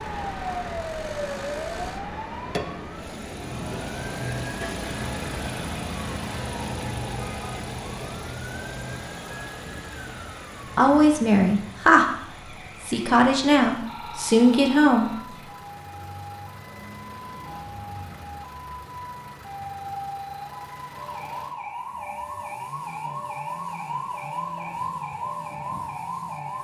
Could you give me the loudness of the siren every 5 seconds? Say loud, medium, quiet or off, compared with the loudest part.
loud, medium, medium, medium, loud, loud.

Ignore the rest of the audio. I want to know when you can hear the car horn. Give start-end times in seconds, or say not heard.
7.2-8.1.